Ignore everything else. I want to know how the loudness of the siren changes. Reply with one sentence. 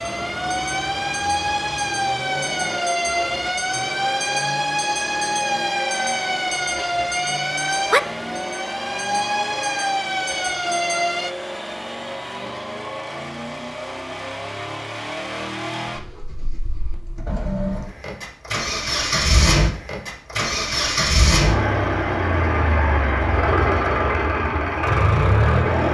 The loudness of the siren stays about the same.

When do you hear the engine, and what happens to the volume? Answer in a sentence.
You can hear the engine from 0.0 to 25.8 s, getting louder.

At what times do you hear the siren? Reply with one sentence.
The siren can be heard from 0.0 to 11.3 s.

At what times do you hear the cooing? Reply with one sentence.
The cooing can't be heard in this clip.